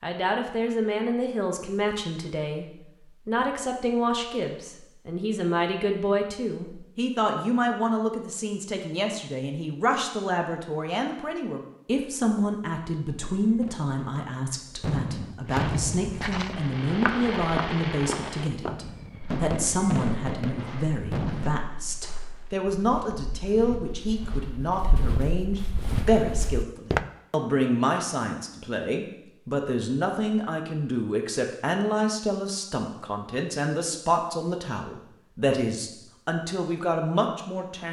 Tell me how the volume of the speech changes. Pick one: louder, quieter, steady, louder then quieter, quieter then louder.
steady.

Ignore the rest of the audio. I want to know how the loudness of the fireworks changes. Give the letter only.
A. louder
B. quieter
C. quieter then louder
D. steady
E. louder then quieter
D.